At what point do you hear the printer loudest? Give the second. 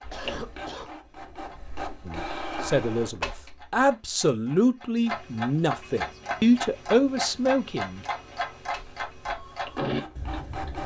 3 s.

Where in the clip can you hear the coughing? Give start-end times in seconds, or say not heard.
0.1-0.9.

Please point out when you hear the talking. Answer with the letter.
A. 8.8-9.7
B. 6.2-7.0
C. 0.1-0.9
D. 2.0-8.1
D.